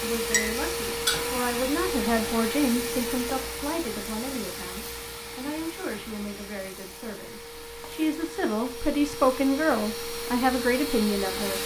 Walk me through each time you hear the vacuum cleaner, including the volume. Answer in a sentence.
The vacuum cleaner can be heard from 0.0 to 11.6 s, getting quieter then louder.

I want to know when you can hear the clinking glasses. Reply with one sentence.
The clinking glasses can be heard from 0.3 to 1.3 s.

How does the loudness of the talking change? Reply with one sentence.
The volume of the talking goes down, then up.